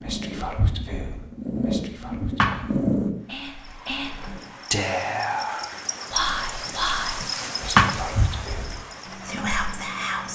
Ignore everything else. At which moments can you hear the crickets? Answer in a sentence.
You can hear the crickets from 3.1 to 10.3 s.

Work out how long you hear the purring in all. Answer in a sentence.
You can hear the purring for 3 seconds altogether.